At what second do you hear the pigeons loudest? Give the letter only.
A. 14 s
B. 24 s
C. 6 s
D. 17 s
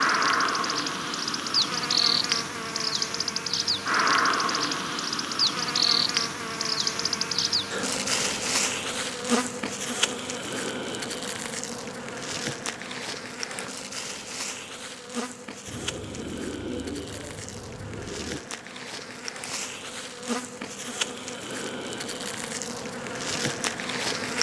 D.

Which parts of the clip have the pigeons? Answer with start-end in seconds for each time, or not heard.
15.7-18.4.